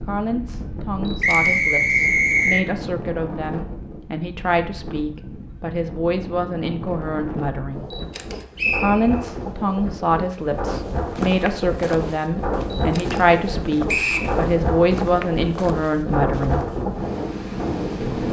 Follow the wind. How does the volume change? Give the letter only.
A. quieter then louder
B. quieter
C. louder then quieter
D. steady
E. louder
E.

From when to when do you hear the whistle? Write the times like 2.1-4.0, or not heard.
1.2-2.6, 8.6-9.1, 13.8-14.3.